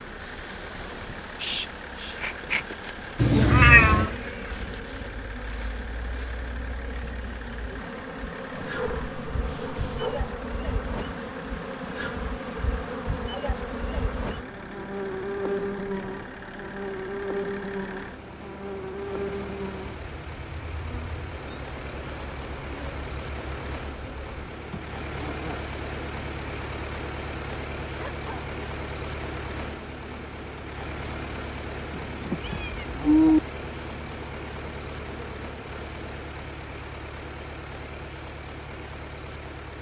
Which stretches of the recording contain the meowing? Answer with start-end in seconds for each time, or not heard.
3.2-4.2, 32.4-33.4.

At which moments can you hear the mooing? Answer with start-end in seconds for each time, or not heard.
not heard.